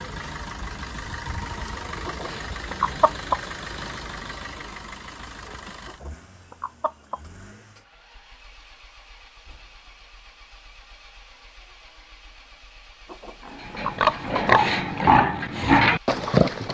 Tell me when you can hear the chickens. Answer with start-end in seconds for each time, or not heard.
2.0-3.4, 5.8-7.2, 13.1-14.5.